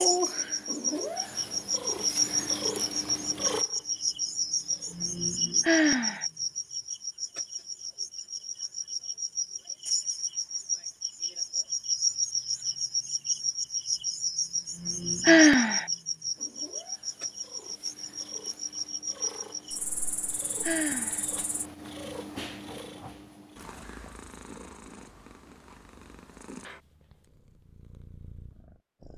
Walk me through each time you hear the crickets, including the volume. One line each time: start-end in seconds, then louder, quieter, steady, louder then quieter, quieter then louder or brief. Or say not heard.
0.0-21.6 quieter.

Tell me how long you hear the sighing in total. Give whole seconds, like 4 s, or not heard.
2 s.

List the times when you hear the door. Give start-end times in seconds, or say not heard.
not heard.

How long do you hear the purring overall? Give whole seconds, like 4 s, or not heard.
18 s.